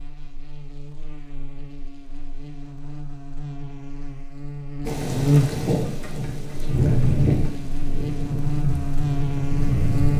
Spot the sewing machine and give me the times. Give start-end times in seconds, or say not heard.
not heard.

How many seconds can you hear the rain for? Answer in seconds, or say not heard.
5 s.